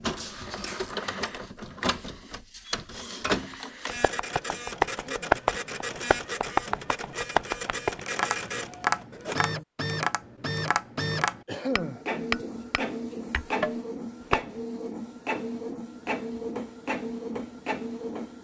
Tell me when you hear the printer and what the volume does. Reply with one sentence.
The printer can be heard from 0.0 to 18.3 s, at a steady volume.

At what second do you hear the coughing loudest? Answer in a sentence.
The loudest moment of the coughing is at 12 seconds.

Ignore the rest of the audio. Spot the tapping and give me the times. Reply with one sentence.
You can hear the tapping from 3.9 to 14.4 s.